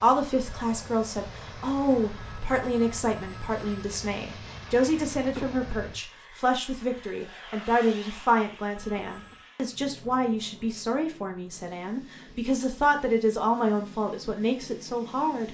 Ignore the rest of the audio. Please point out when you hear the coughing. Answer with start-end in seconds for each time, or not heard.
5.3-5.8, 8.9-9.3.